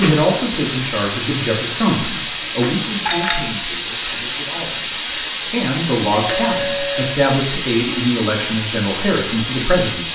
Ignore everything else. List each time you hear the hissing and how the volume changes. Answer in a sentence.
The hissing can be heard from 0.0 to 10.1 s, at a steady volume.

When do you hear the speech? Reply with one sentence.
You can hear the speech from 0.0 to 10.1 s.